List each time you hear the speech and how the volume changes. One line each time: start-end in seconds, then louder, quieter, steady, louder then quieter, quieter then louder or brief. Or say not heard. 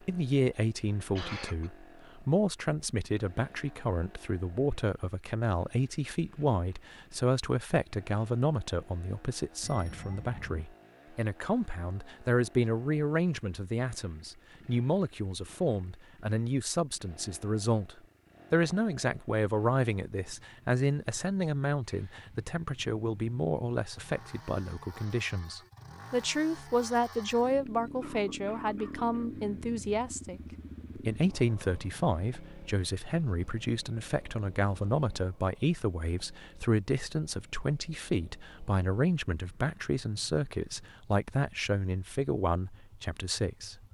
0.1-43.8 steady.